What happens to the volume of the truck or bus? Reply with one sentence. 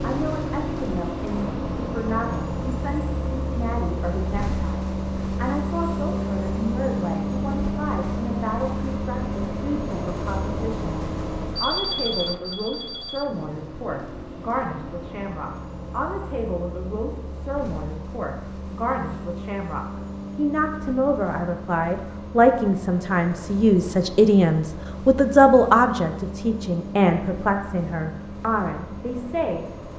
The volume of the truck or bus goes down.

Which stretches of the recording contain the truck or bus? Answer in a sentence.
The truck or bus can be heard from 0.0 to 29.9 s.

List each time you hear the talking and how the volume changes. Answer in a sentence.
You can hear the talking from 0.0 to 29.6 s, getting louder.